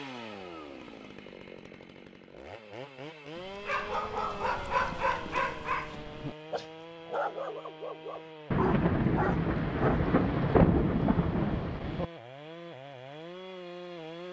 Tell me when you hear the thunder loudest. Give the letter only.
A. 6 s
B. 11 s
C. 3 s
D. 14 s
B.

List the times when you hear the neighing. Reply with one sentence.
You can't hear the neighing here.